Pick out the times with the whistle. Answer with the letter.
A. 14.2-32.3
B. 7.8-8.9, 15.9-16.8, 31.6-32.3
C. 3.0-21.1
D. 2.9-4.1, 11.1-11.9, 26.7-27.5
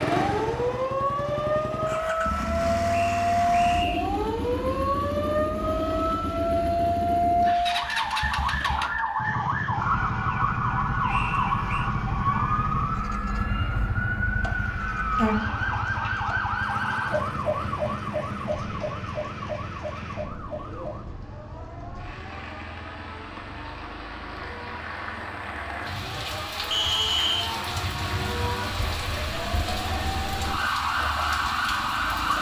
D.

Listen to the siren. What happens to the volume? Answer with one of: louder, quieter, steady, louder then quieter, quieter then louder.
quieter then louder.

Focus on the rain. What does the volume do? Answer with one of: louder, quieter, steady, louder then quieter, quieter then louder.
louder.